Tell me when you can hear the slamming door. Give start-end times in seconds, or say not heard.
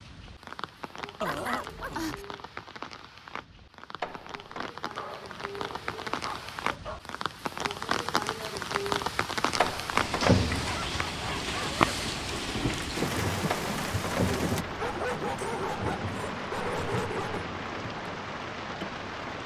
4.0-4.7, 9.6-10.8, 13.5-14.5.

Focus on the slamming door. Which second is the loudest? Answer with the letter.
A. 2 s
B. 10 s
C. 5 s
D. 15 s
B.